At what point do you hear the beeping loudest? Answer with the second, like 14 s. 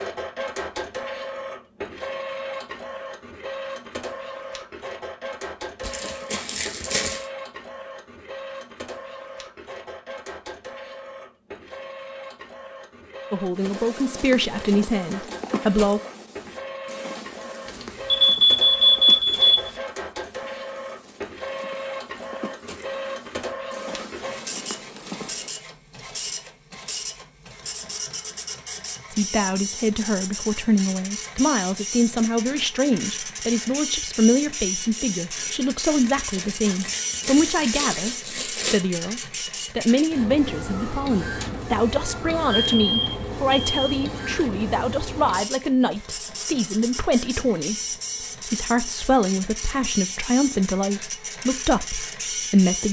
19 s.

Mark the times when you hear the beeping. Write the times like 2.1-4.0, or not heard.
17.6-19.8, 42.5-43.8.